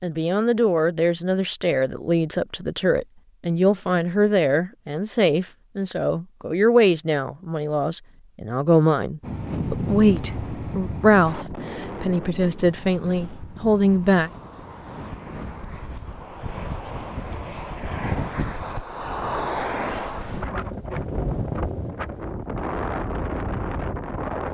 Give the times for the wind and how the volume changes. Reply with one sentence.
You can hear the wind from 9.2 to 24.4 s, getting quieter then louder.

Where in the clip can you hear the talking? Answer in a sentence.
You can hear the talking from 0.0 to 14.3 s.